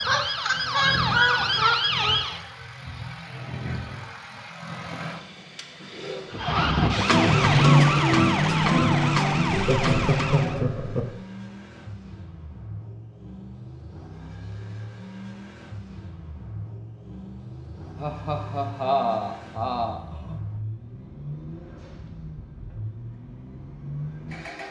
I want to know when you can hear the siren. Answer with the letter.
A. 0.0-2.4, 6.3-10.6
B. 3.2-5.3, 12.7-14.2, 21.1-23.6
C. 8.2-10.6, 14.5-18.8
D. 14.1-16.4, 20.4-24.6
A.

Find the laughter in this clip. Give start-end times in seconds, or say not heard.
0.1-2.2, 9.5-11.1, 18.0-20.4.